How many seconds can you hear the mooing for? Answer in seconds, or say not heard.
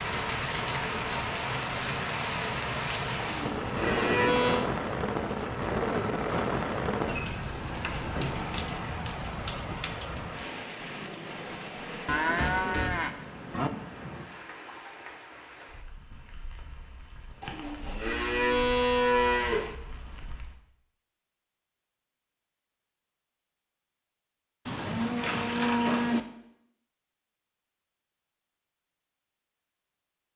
7 s.